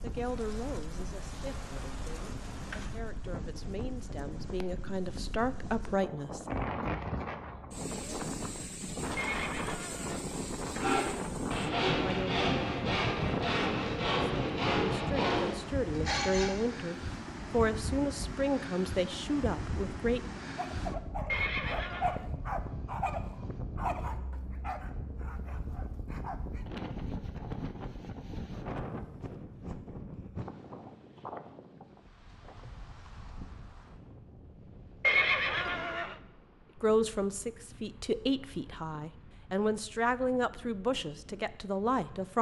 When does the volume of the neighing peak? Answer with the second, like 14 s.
35 s.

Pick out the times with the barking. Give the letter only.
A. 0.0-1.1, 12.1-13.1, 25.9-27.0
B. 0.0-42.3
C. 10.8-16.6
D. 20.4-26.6
D.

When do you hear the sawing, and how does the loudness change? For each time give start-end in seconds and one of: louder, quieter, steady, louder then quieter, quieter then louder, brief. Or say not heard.
10.8-16.6 steady.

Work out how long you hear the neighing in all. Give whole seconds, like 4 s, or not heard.
3 s.